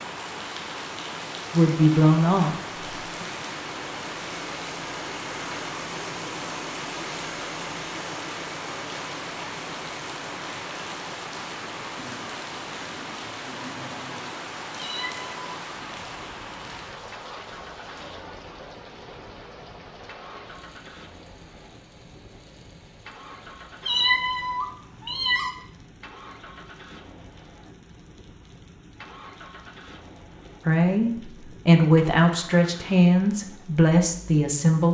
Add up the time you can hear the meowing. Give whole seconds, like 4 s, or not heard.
2 s.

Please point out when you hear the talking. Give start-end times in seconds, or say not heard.
1.5-2.6, 30.6-34.8.